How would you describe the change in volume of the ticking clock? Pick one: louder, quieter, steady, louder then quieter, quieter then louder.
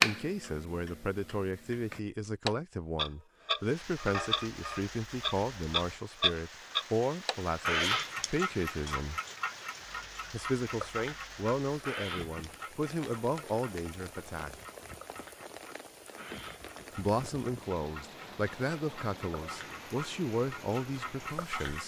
quieter then louder.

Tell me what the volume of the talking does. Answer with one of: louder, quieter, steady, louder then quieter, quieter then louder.
steady.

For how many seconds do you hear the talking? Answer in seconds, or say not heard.
18 s.